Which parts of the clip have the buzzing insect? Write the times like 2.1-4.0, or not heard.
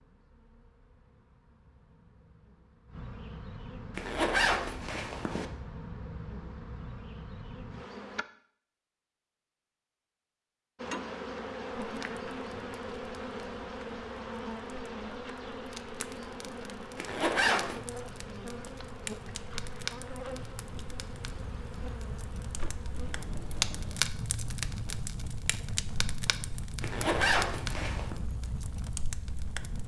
0.0-8.2, 10.8-24.1.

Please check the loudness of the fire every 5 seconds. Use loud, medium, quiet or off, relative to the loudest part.
off, off, quiet, medium, loud, loud.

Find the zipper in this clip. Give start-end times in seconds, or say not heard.
4.0-5.5, 16.9-17.8, 26.8-28.1.